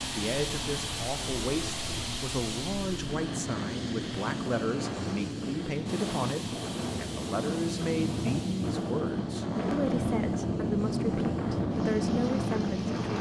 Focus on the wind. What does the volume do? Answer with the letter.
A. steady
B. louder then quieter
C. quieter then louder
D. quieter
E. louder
E.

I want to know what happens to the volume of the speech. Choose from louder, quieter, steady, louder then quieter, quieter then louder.
steady.